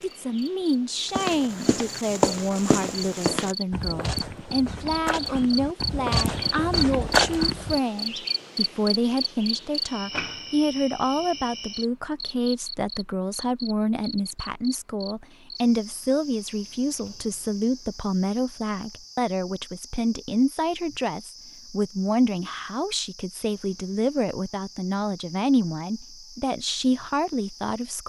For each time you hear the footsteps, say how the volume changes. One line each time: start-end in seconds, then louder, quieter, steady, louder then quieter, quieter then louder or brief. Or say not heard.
1.1-7.8 quieter then louder.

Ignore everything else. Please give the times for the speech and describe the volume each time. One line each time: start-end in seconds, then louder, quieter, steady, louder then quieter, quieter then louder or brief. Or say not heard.
0.0-28.0 steady.